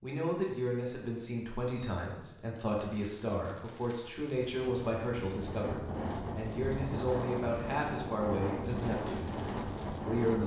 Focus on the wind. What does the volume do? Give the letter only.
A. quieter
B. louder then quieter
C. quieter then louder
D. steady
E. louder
D.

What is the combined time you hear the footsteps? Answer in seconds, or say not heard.
not heard.